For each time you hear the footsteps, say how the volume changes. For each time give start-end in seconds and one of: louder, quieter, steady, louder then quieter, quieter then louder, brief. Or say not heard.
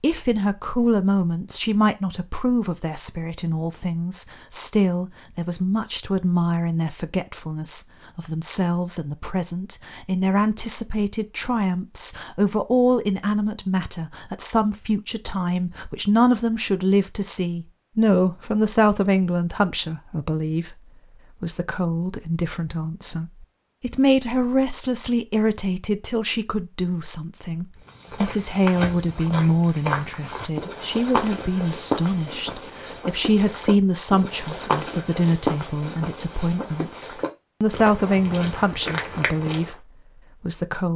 27.9-39.8 steady.